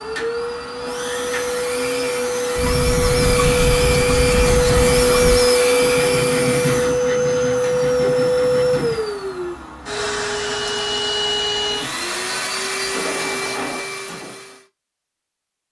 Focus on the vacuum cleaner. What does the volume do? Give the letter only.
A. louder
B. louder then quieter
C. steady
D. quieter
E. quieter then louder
B.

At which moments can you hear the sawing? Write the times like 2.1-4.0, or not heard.
2.5-9.0.